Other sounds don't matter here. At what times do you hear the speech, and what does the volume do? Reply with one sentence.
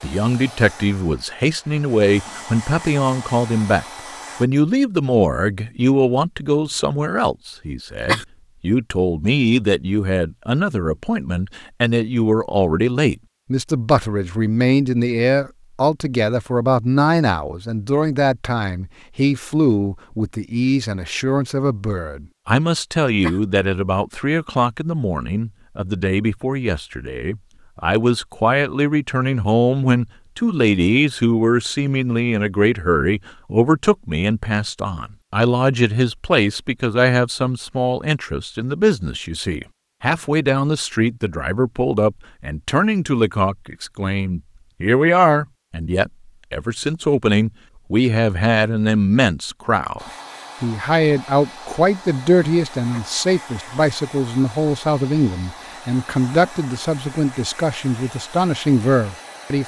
The speech can be heard from 0.0 to 59.6 s, at a steady volume.